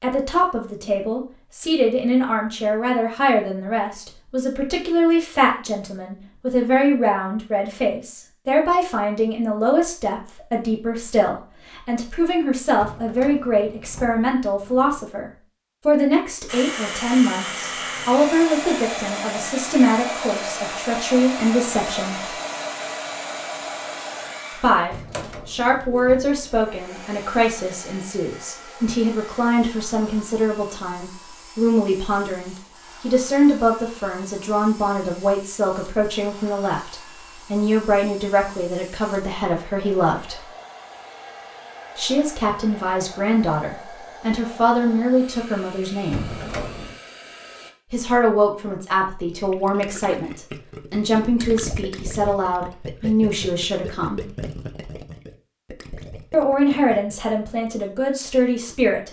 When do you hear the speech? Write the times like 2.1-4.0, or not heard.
0.0-22.3, 24.6-40.5, 42.0-46.3, 47.9-54.2, 56.3-59.0.